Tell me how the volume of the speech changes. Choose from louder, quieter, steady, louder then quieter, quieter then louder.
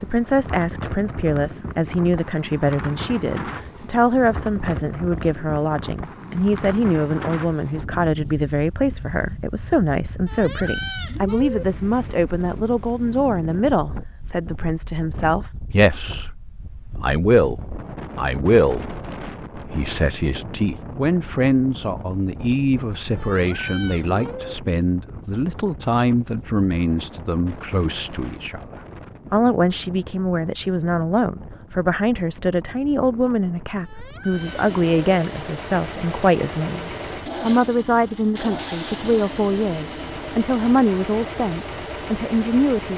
steady.